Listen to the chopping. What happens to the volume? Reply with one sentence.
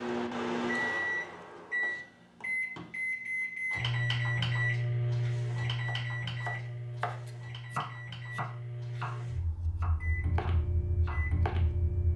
The loudness of the chopping goes down.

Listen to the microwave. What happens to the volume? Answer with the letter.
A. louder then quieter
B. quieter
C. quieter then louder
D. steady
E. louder
B.